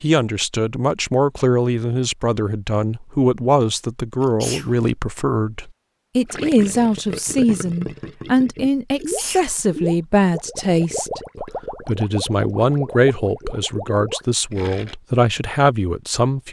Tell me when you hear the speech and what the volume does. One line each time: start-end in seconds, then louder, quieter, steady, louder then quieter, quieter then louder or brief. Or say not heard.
0.0-16.4 steady.